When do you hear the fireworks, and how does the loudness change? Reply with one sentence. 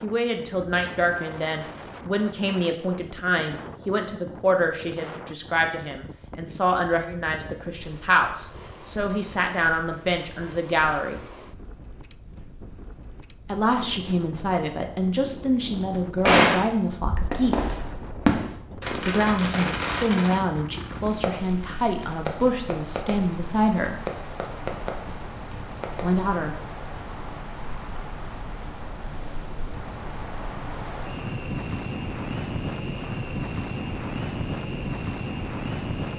You can hear the fireworks from 15.2 to 26.1 s, getting quieter.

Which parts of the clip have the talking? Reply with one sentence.
The talking can be heard from 0.0 to 11.2 s, from 13.4 to 17.8 s, from 19.1 to 24.1 s and from 26.0 to 26.6 s.